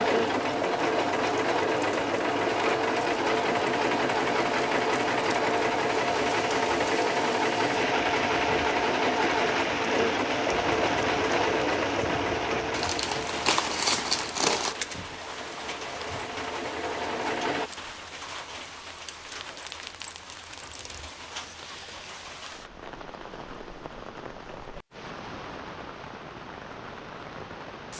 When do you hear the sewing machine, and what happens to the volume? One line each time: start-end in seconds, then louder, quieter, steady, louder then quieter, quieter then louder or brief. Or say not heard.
0.0-17.7 quieter.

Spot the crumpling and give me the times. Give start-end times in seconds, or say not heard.
12.7-14.8.